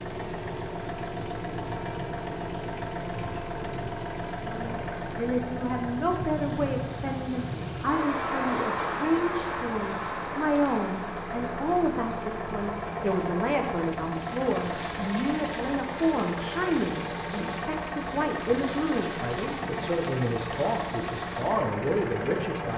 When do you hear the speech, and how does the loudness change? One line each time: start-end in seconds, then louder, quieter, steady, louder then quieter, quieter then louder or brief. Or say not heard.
4.4-22.7 steady.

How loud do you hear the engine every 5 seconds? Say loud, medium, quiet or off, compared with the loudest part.
loud, medium, loud, loud, loud.